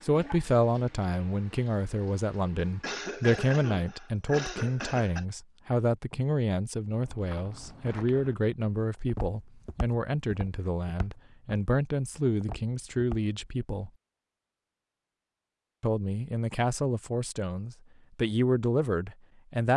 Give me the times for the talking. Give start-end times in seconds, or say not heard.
0.0-13.9, 15.8-19.7.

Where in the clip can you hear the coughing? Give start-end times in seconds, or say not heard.
2.8-5.2.